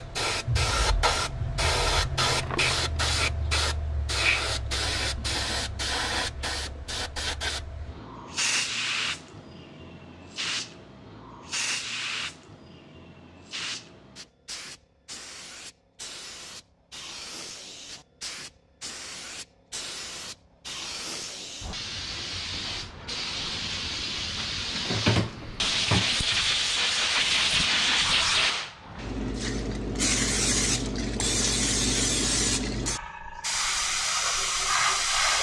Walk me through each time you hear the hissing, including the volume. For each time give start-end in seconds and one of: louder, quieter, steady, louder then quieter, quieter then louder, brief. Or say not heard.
0.0-35.3 quieter then louder.